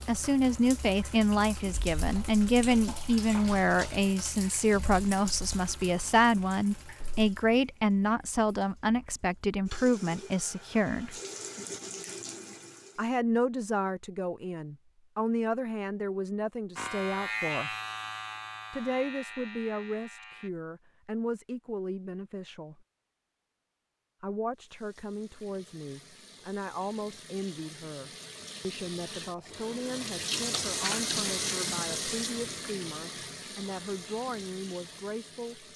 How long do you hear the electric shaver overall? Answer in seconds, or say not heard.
4 s.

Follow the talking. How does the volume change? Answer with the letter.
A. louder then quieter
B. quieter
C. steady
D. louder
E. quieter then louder
B.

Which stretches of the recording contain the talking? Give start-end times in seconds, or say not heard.
0.1-11.2, 12.9-17.8, 18.7-22.9, 24.2-35.6.